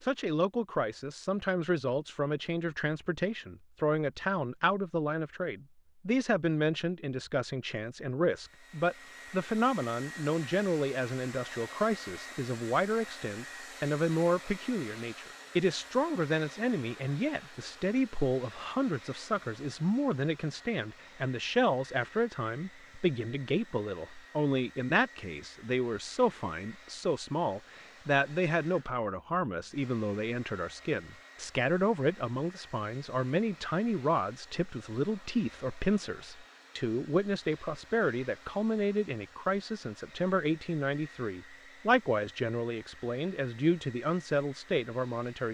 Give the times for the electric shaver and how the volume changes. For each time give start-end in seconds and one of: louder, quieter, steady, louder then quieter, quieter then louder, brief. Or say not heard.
not heard.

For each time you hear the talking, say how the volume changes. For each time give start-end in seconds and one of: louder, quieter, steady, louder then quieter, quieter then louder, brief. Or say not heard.
0.0-45.4 steady.